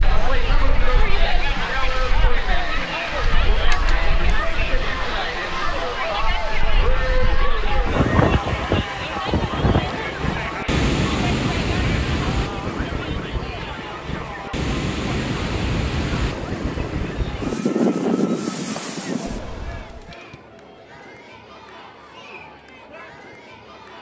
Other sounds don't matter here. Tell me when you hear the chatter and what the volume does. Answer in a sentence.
You can hear the chatter from 0.0 to 23.9 s, getting quieter.